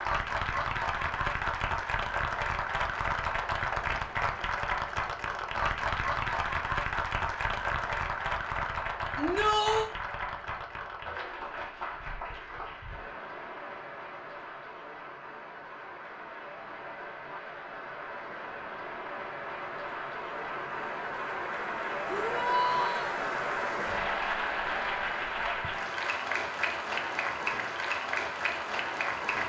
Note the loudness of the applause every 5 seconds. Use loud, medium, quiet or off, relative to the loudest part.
loud, loud, medium, medium, loud, loud.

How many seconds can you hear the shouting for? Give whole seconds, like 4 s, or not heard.
2 s.